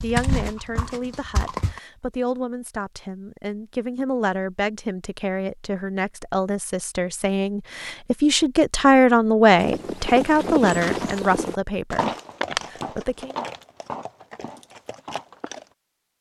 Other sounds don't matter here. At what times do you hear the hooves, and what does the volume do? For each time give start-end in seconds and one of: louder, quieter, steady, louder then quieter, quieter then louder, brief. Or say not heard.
0.0-1.8 brief
9.6-15.7 quieter.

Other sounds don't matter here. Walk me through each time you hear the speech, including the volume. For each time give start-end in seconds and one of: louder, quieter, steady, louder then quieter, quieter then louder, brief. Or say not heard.
0.0-13.3 louder then quieter.